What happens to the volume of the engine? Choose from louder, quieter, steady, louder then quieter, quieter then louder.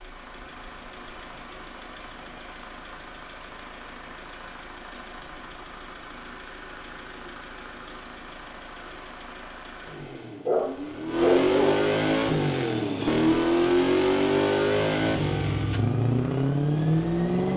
louder.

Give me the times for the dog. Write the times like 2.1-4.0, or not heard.
10.4-11.8.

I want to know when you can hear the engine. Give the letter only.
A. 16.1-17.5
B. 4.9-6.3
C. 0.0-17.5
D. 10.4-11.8
C.